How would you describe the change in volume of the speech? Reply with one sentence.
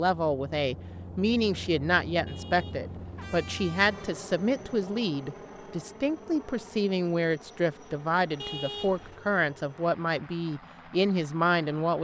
The loudness of the speech stays about the same.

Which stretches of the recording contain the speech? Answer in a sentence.
The speech can be heard from 0.0 to 11.9 s.